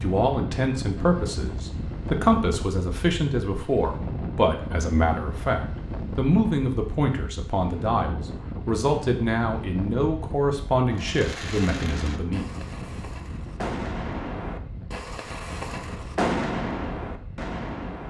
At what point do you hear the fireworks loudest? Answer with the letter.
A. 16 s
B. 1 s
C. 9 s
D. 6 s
A.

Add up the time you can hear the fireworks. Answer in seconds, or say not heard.
7 s.